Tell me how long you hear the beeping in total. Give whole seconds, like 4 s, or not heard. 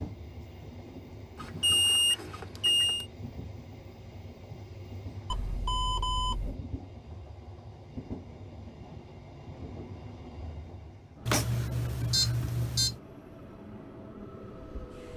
5 s.